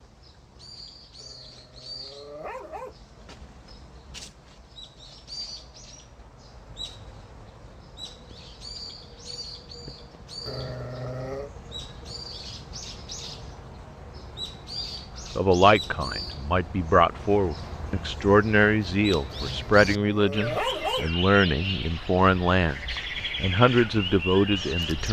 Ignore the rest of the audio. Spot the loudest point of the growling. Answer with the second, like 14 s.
21 s.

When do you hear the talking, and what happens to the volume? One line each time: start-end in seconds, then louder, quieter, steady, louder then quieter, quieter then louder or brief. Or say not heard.
15.3-25.0 steady.